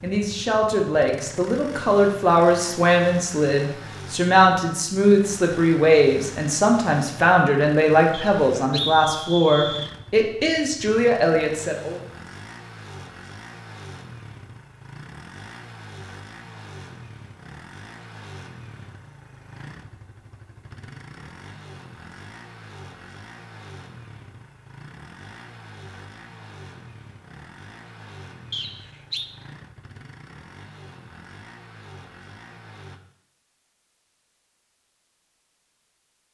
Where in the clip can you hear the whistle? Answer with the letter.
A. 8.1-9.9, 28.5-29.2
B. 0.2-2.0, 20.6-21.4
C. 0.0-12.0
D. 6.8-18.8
A.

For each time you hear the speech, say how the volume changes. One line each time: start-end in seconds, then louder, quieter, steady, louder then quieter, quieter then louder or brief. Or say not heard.
0.0-12.0 steady.